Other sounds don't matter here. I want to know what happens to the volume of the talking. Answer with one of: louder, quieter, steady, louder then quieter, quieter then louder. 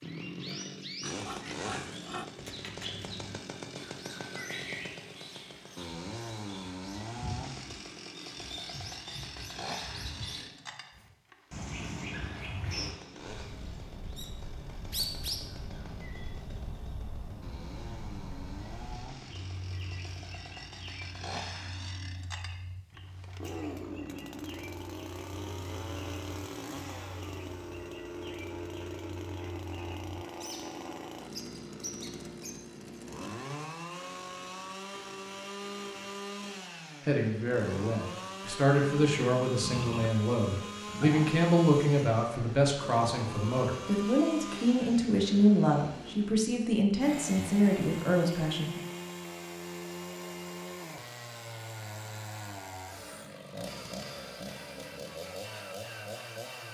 steady.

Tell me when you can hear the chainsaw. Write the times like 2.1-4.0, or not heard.
0.0-56.6.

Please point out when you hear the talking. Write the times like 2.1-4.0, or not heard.
37.0-48.8.